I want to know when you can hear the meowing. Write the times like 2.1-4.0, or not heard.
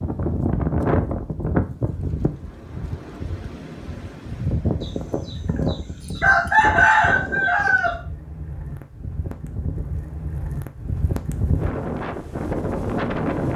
not heard.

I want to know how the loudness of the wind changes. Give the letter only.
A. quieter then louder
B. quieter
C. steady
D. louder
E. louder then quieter
A.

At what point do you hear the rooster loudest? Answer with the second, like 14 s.
7 s.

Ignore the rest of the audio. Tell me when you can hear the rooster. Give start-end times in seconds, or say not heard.
4.8-8.0.